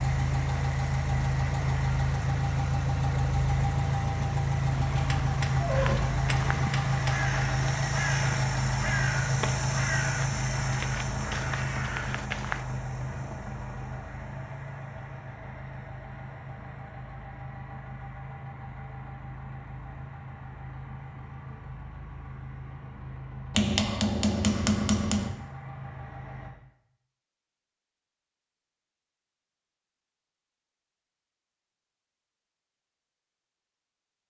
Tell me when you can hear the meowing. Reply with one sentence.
The meowing can be heard from 4.7 to 6.7 s.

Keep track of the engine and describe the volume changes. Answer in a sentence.
The loudness of the engine goes down.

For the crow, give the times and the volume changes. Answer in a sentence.
The crow can be heard from 5.7 to 12.7 s, at a steady volume.